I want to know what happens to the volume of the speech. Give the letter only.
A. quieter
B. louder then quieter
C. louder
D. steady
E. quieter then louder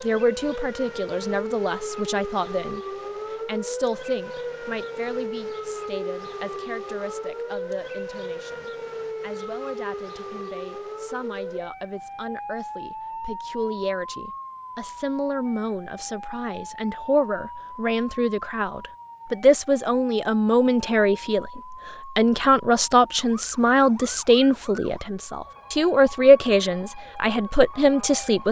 E.